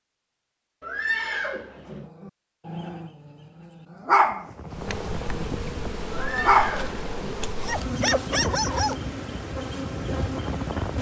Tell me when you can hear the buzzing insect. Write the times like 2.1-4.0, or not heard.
4.7-10.9.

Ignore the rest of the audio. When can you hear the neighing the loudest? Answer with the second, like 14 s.
1 s.